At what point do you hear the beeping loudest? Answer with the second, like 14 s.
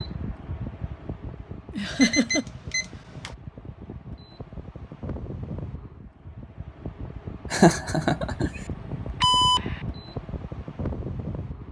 9 s.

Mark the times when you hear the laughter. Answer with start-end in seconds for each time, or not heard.
1.8-2.5, 7.5-8.5.